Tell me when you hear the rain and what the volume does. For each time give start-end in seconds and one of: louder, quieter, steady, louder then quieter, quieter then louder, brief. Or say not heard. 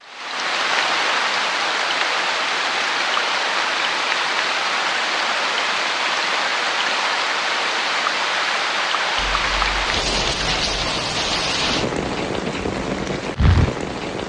0.0-14.2 steady.